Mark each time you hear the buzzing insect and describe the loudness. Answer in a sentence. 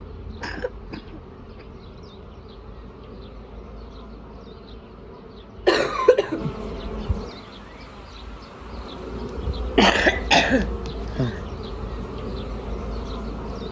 The buzzing insect can be heard from 0.0 to 13.6 s, getting louder.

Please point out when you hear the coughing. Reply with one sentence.
The coughing can be heard from 0.4 to 1.6 s, from 5.7 to 6.5 s and from 9.8 to 11.3 s.